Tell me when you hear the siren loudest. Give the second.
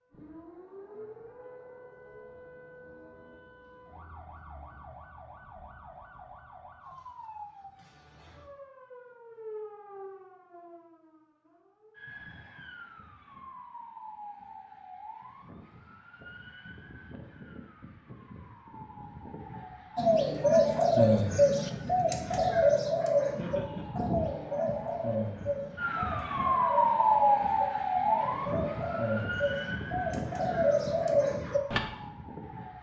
27 s.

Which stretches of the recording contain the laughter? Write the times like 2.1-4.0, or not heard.
23.4-23.9.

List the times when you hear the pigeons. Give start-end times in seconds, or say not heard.
19.9-31.8.